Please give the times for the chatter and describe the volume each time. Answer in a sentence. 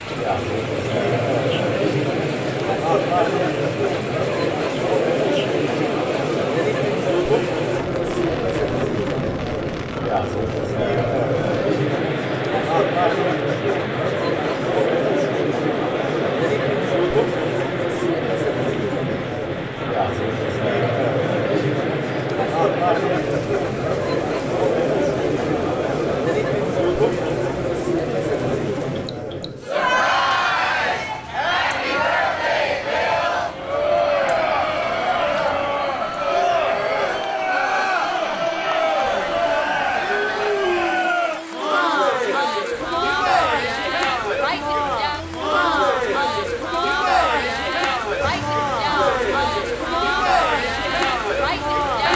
The chatter can be heard from 0.0 to 52.1 s, at a steady volume.